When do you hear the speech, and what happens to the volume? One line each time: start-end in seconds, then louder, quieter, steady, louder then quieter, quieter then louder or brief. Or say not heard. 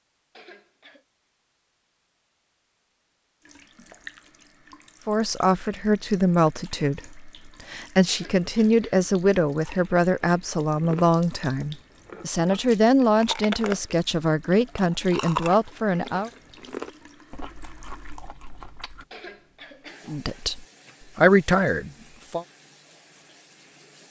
5.0-16.3 steady
20.1-22.4 brief.